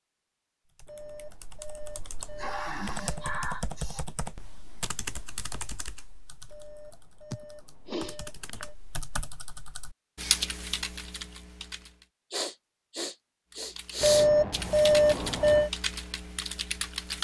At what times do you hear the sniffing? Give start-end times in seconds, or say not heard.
2.2-4.0, 7.3-8.6, 12.3-14.3.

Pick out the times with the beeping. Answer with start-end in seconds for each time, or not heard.
0.9-3.3, 6.5-8.7, 14.0-15.7.